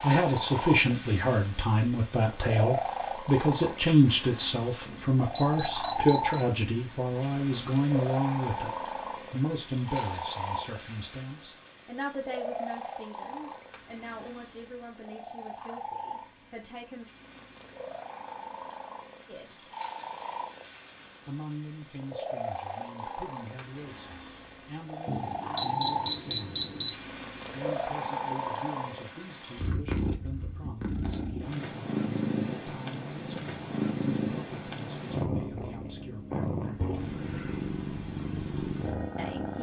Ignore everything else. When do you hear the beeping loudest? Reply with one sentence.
The volume of the beeping peaks at 26 seconds.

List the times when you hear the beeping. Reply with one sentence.
The beeping can be heard from 4.8 to 6.4 s and from 25.1 to 26.9 s.